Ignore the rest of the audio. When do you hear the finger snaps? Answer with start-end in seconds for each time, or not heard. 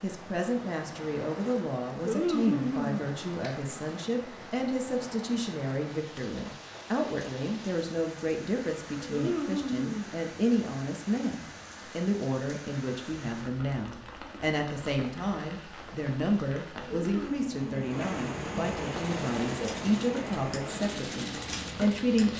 1.9-3.6, 8.9-10.1, 16.8-17.9.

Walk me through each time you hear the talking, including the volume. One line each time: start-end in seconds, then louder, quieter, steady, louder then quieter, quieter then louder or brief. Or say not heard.
0.0-22.3 steady.